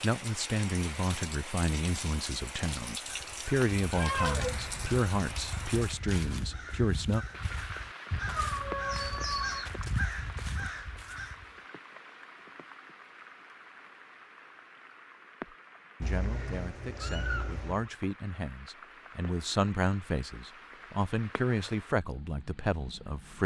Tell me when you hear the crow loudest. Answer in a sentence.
The loudest moment of the crow is at 10 seconds.